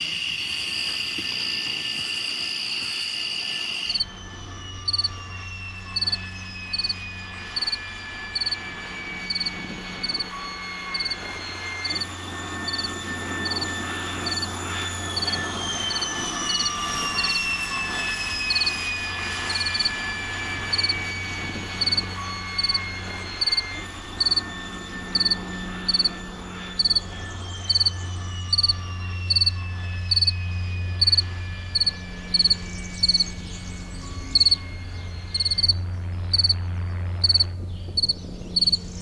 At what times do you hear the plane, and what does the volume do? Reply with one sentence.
The plane can be heard from 0.0 to 38.9 s, getting louder then quieter.